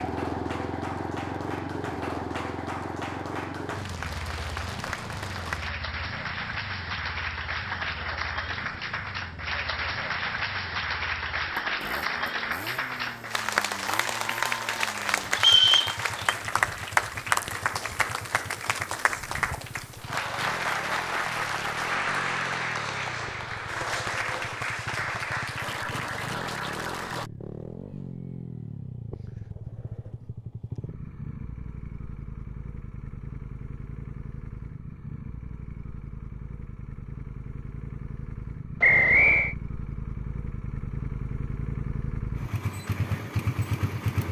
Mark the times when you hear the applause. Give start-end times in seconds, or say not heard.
0.0-27.3.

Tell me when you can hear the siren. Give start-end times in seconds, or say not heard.
not heard.